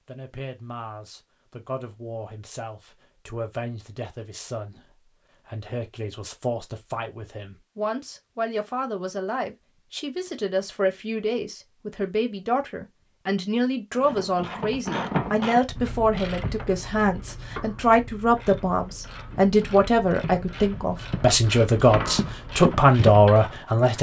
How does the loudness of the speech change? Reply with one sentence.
The volume of the speech goes up.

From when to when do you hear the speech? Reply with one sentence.
You can hear the speech from 0.1 to 23.9 s.